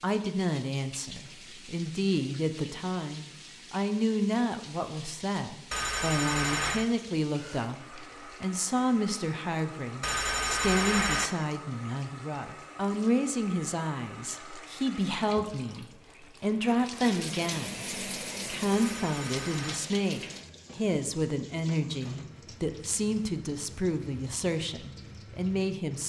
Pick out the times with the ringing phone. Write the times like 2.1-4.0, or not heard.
5.7-6.8, 10.0-11.3, 18.7-19.8.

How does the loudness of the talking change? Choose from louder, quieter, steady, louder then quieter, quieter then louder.
steady.